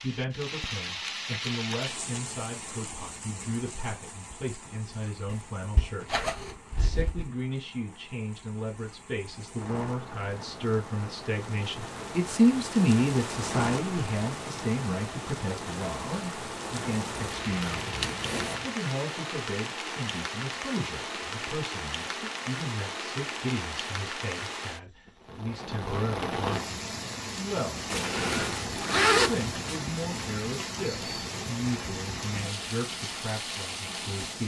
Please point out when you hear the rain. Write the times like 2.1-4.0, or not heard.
0.0-34.4.